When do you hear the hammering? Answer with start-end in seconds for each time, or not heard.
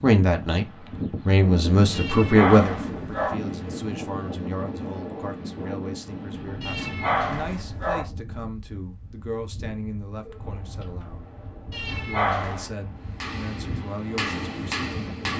13.1-15.3.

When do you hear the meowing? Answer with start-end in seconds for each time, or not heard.
1.9-3.4, 6.6-8.1, 11.7-12.7.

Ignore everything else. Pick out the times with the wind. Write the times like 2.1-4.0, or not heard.
0.2-15.3.